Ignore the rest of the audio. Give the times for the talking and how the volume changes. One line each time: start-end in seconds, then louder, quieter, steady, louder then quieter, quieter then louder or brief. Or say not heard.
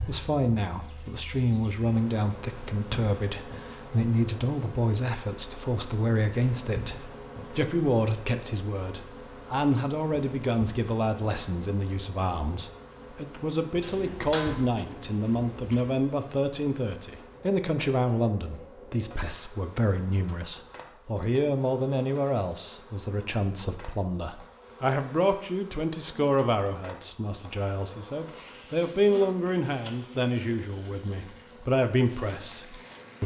0.0-33.2 steady.